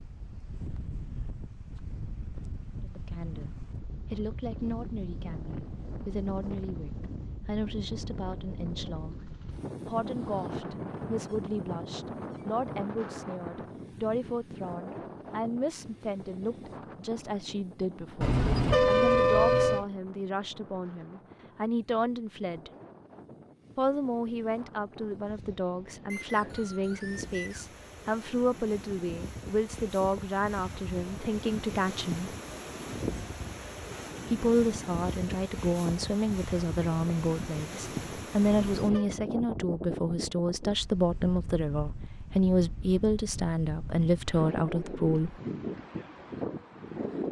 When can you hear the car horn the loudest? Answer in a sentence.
The volume of the car horn peaks at 19 seconds.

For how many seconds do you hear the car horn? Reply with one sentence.
You can hear the car horn for 2 seconds altogether.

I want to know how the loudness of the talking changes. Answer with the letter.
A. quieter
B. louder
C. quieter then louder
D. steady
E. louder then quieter
B.